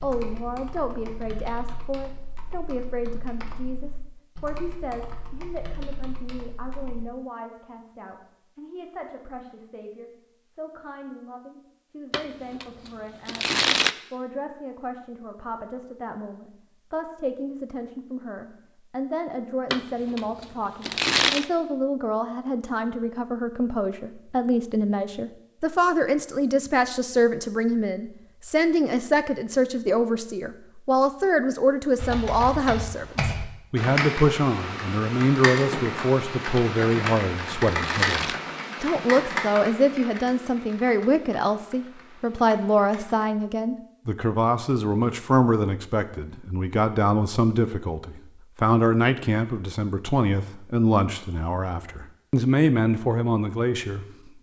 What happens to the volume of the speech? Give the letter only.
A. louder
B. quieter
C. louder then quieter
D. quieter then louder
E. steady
A.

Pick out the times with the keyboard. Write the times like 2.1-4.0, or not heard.
0.0-7.0, 31.9-43.2.